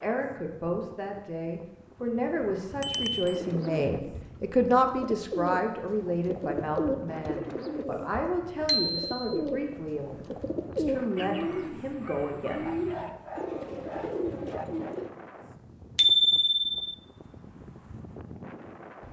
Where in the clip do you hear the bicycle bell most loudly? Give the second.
16 s.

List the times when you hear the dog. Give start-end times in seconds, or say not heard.
12.7-14.7.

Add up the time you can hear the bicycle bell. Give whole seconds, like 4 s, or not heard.
2 s.